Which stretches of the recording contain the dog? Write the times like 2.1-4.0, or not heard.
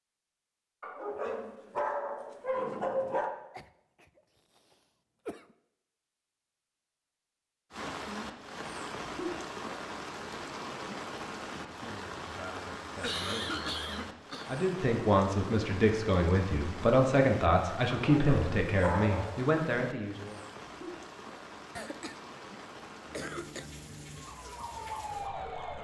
0.8-3.3, 17.9-19.6.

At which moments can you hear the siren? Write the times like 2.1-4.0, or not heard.
23.1-25.7.